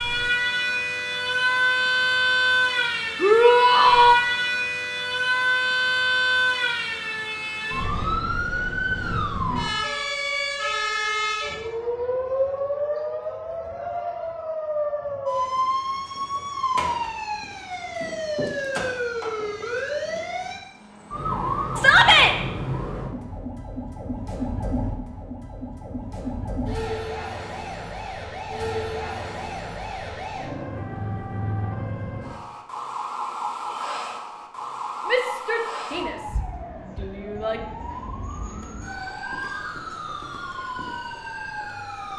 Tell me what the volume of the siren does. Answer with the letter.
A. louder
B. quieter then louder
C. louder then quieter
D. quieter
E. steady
D.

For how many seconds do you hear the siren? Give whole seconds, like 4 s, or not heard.
42 s.